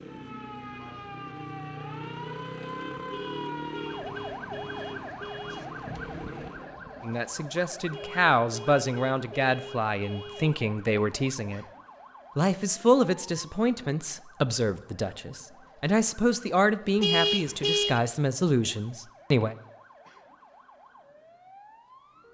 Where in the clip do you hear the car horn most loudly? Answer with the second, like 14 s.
17 s.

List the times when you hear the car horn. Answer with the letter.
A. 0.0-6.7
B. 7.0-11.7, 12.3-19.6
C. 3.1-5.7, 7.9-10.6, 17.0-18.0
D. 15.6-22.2
C.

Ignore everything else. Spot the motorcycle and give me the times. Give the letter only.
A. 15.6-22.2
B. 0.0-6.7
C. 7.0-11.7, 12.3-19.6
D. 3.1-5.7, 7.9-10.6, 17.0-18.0
B.